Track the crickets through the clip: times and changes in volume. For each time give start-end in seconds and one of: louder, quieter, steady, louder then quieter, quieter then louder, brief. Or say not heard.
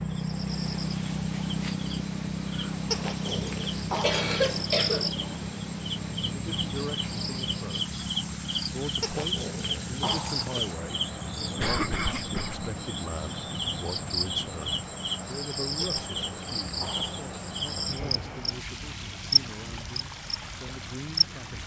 0.0-21.6 steady.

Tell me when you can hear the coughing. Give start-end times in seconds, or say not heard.
4.0-5.4, 11.6-12.7, 16.9-18.3.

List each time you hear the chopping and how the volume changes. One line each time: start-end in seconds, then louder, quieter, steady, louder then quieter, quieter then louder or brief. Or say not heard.
not heard.